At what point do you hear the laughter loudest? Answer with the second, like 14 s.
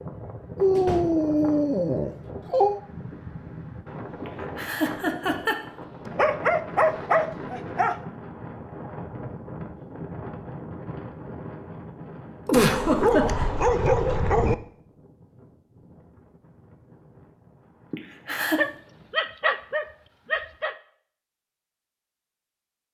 13 s.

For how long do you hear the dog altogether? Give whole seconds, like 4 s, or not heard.
8 s.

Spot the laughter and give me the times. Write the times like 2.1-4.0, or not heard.
4.2-5.6, 12.4-13.4, 17.9-18.6.